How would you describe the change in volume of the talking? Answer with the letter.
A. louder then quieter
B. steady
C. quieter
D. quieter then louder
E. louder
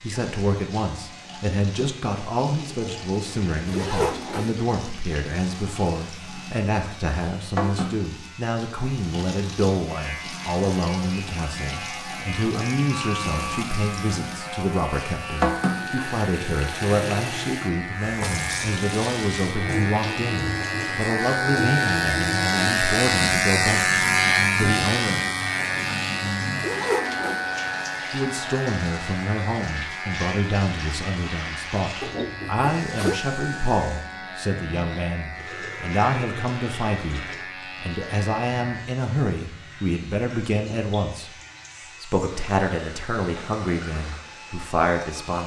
B.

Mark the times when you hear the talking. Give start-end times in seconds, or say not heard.
0.0-25.4, 28.1-41.3, 42.0-45.4.